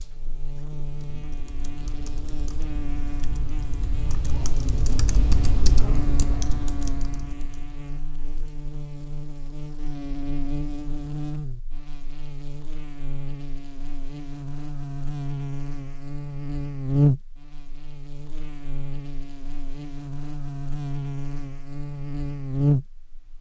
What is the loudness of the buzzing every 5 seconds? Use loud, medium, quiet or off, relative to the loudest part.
medium, medium, medium, loud, loud.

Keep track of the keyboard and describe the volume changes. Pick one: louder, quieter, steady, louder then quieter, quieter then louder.
louder then quieter.